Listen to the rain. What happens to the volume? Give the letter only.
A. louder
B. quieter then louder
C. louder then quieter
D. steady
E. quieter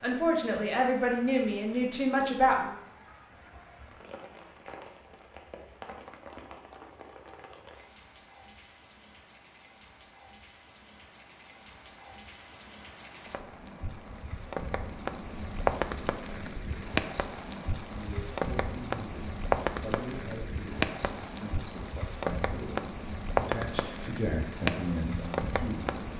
A.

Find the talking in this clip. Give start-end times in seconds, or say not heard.
0.0-2.8, 17.9-26.1.